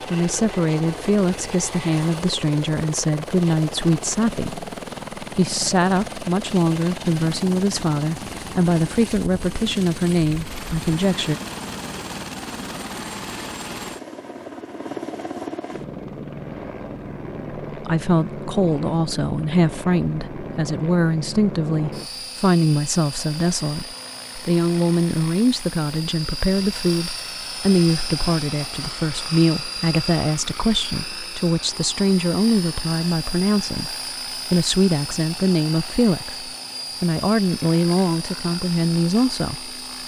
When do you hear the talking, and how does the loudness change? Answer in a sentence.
The talking can be heard from 0.1 to 11.3 s, at a steady volume; and from 17.6 to 39.8 s, at a steady volume.